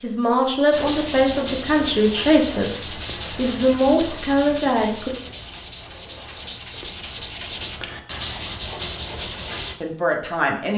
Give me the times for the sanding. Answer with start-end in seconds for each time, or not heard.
0.7-9.8.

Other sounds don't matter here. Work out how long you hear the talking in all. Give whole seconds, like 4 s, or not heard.
6 s.